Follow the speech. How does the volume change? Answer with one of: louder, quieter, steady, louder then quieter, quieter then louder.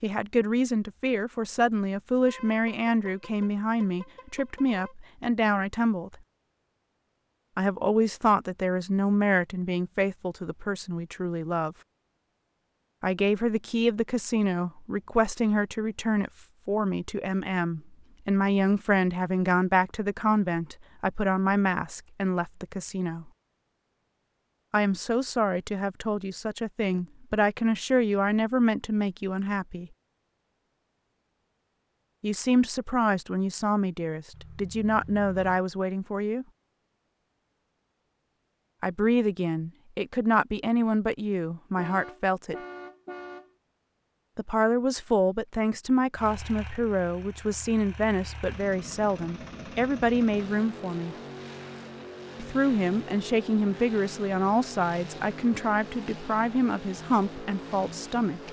steady.